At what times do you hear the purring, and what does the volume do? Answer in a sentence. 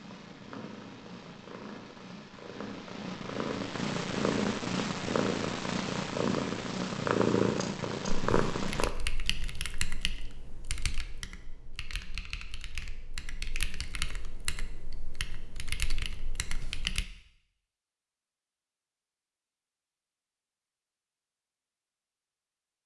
You can hear the purring from 0.0 to 8.9 s, getting louder.